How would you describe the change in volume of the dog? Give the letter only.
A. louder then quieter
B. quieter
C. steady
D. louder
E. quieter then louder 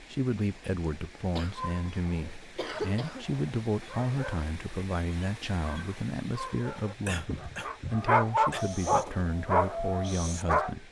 D.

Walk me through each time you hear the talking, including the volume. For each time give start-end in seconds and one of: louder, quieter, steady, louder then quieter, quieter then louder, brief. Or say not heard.
0.0-10.8 steady.